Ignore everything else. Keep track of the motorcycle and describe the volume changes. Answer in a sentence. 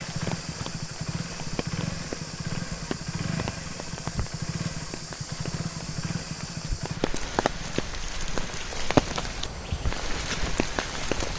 The loudness of the motorcycle goes down.